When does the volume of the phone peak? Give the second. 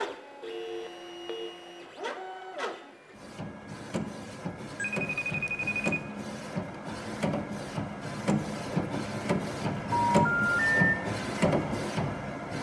10 s.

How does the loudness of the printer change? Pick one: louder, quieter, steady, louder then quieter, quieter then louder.
louder.